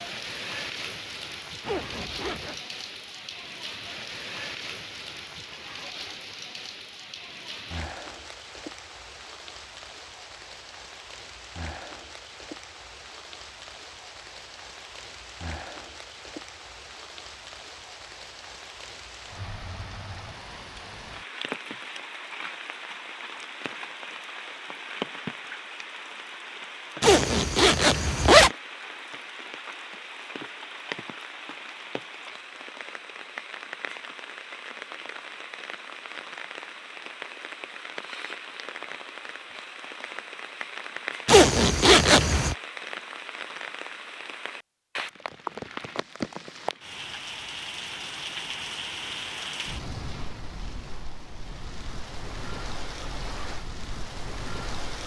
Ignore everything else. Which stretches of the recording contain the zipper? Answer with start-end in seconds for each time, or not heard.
1.6-2.6, 27.0-28.5, 41.2-42.5.